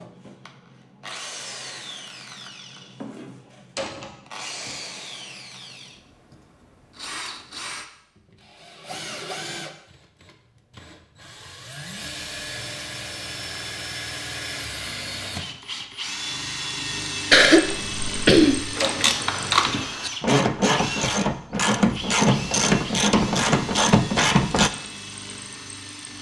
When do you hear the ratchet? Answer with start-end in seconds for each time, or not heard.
18.8-24.7.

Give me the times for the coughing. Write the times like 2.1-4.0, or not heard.
17.3-18.7.